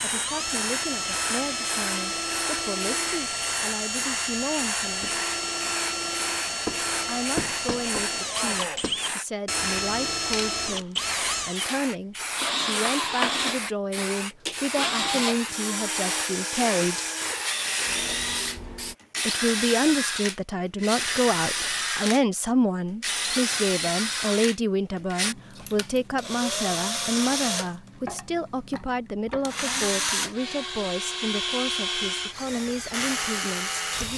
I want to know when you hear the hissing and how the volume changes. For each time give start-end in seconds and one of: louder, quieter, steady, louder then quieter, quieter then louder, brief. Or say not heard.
0.0-18.9 steady.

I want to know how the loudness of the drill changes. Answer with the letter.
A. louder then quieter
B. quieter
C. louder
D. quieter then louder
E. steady
E.